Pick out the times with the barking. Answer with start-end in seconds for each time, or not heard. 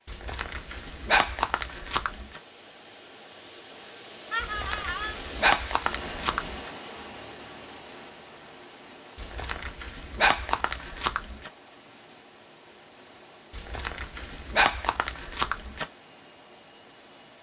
0.1-2.4, 4.4-6.7, 9.2-11.5, 13.5-15.8.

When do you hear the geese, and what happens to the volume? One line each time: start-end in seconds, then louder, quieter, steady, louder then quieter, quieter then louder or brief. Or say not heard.
not heard.